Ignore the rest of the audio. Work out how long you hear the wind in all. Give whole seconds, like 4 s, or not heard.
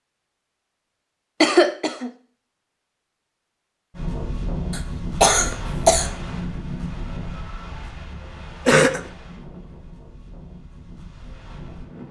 8 s.